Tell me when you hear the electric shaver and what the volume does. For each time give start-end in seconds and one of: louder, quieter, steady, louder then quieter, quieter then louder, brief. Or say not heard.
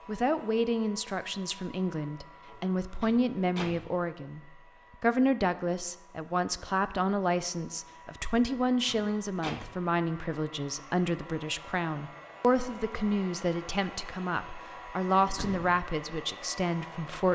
not heard.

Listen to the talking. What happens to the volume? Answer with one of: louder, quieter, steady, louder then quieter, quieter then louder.
steady.